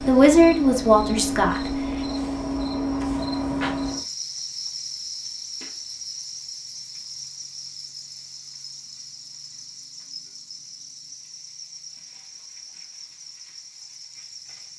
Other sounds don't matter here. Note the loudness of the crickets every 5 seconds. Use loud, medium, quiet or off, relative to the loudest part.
loud, medium, quiet.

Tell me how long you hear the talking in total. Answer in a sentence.
The talking can be heard for 2 seconds in total.